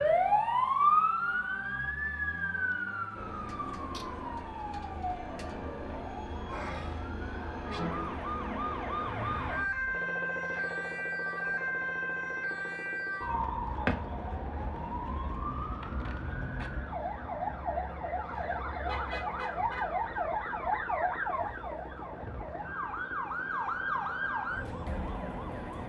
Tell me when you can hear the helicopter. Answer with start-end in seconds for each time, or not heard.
3.1-25.8.